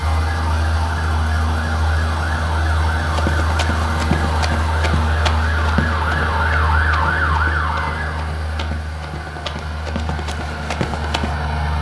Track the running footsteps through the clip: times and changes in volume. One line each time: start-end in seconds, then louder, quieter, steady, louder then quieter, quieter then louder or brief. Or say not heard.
3.0-11.3 quieter then louder.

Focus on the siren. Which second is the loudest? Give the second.
7 s.